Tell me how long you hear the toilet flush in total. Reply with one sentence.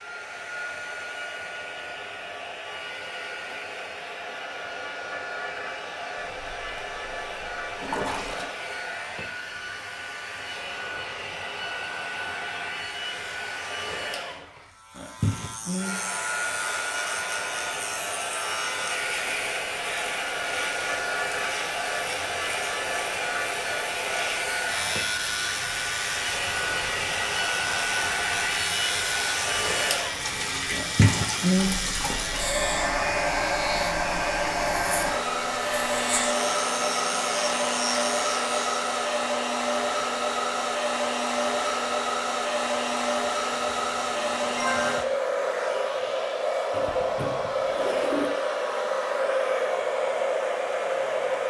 You can hear the toilet flush for 6 seconds altogether.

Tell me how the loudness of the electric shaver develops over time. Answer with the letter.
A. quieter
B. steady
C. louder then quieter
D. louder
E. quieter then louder
B.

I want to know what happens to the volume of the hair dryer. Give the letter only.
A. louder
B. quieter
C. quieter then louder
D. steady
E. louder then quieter
A.